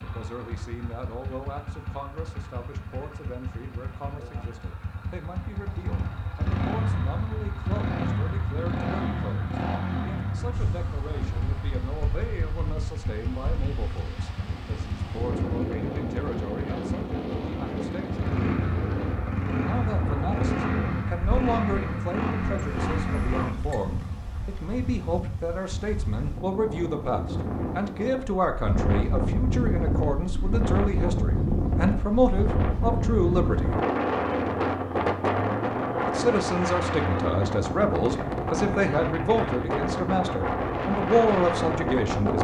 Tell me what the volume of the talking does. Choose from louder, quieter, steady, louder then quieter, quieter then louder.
louder.